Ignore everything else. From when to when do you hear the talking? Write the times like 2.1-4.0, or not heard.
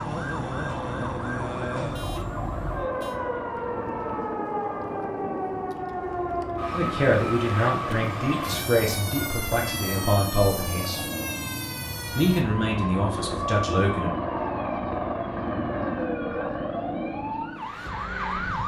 6.7-11.1, 12.1-14.2.